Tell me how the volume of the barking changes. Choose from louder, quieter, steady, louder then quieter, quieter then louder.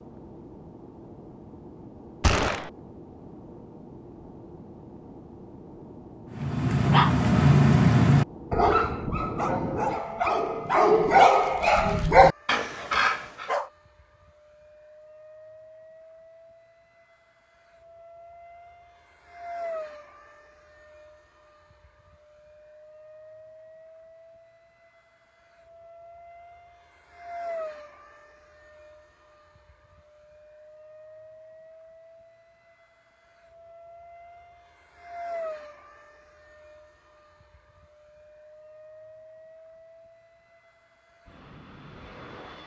quieter then louder.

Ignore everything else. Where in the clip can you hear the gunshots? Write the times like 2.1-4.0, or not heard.
2.2-2.7.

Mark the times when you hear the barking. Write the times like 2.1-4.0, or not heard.
6.3-13.7.